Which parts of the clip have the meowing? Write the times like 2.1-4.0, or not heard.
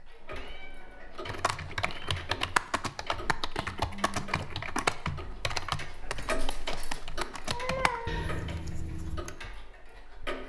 0.1-2.2, 7.5-8.2.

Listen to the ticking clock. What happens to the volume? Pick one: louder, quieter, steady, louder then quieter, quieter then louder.
louder then quieter.